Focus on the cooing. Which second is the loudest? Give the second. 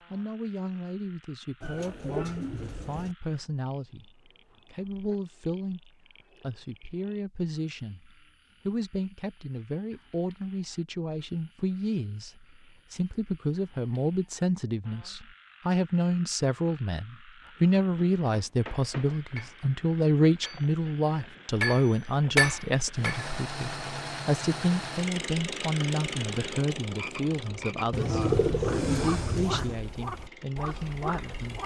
28 s.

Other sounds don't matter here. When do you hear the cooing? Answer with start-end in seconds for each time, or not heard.
1.6-3.1, 27.9-29.8.